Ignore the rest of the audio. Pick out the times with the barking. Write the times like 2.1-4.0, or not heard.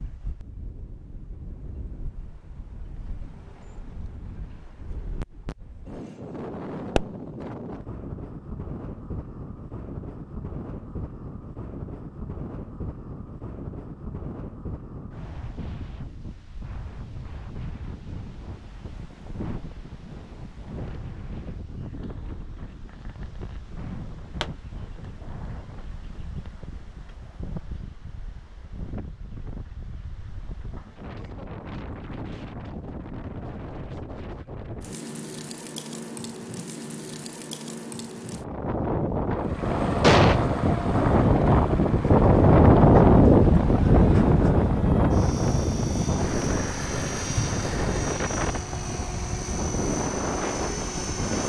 not heard.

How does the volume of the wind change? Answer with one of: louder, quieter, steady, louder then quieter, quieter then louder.
louder.